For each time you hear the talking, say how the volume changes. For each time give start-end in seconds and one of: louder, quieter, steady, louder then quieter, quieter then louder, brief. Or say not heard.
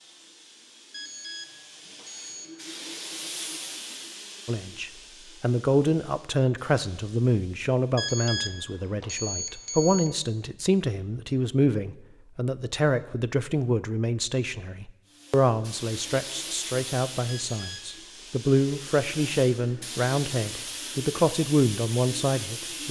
4.5-22.8 steady.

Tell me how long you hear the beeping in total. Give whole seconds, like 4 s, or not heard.
4 s.